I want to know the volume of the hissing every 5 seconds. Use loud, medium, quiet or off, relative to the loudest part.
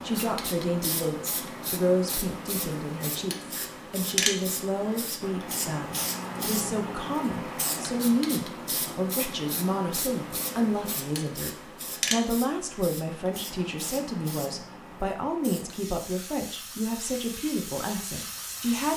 loud, loud, loud, medium.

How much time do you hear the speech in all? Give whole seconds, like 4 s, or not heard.
19 s.